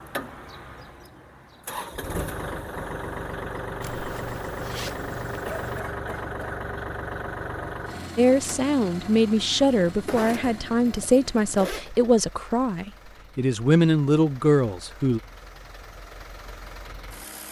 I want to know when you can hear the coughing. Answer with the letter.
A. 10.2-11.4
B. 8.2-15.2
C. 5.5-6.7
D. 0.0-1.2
C.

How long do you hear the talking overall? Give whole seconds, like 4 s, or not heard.
7 s.